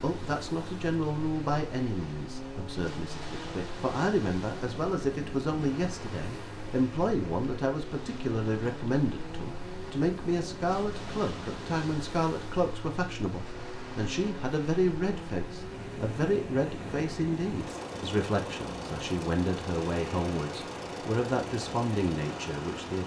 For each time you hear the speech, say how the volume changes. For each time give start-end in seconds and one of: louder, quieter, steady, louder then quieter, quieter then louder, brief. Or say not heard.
0.0-23.0 steady.